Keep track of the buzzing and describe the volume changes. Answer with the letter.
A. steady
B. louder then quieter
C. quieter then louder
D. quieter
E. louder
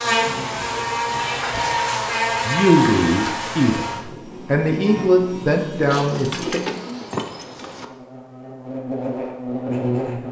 C.